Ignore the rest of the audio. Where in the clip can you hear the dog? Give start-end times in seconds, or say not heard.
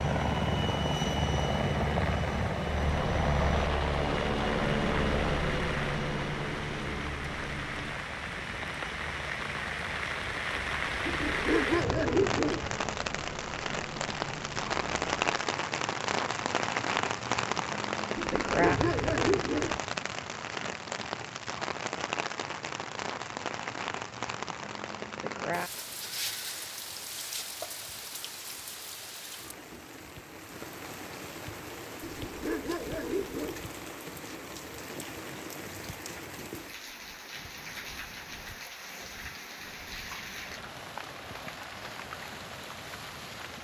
11.1-12.7, 18.1-19.8, 32.0-33.6.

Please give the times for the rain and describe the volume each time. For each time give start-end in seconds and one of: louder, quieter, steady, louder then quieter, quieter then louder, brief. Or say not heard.
0.0-43.6 louder then quieter.